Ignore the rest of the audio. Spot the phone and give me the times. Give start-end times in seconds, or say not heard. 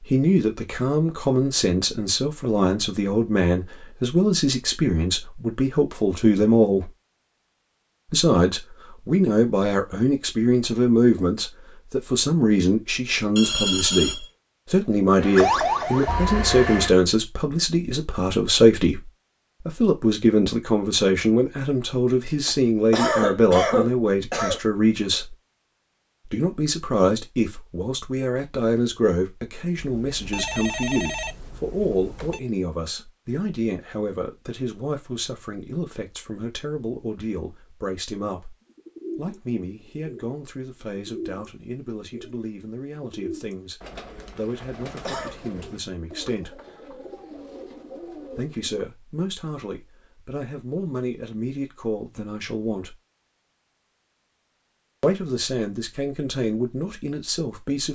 13.3-14.3, 29.8-32.4.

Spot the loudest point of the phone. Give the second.
14 s.